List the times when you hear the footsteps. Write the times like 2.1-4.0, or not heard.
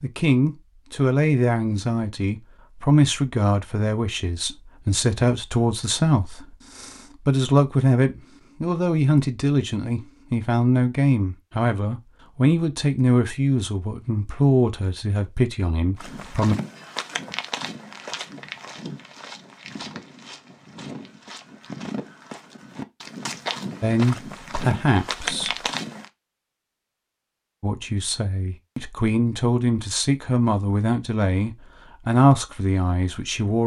15.9-26.1.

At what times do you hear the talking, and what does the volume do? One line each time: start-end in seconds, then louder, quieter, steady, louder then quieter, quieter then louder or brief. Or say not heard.
0.0-16.6 steady
23.8-25.6 brief
27.6-33.6 louder.